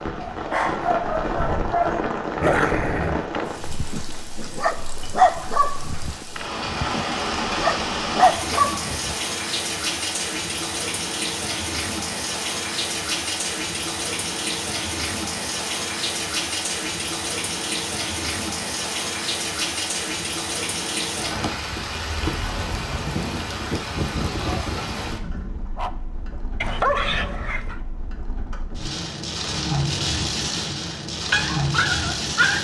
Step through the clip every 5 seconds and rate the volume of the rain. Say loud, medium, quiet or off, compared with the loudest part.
loud, loud, loud, loud, loud, medium, loud.